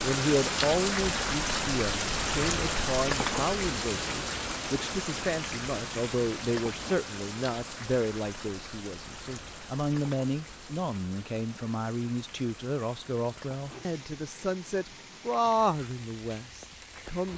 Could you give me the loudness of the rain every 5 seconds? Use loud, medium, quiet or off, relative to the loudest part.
loud, medium, quiet, quiet.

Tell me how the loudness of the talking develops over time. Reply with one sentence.
The volume of the talking stays about the same.